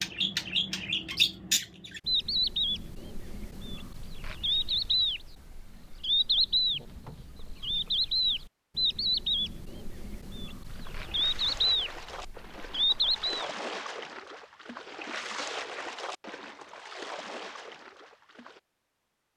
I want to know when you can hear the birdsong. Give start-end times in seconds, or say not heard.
0.0-13.5.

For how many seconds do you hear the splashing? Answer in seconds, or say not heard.
8 s.